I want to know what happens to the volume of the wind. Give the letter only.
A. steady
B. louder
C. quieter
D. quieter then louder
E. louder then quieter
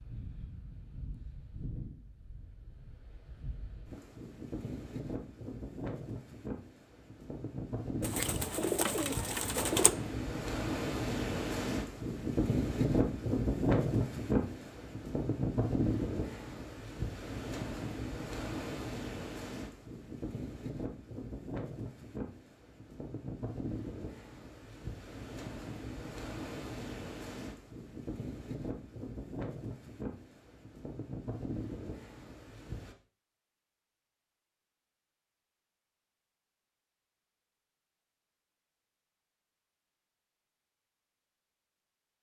E.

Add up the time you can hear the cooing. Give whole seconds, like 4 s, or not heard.
2 s.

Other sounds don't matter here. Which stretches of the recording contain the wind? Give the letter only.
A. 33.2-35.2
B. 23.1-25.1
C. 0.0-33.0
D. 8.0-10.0
C.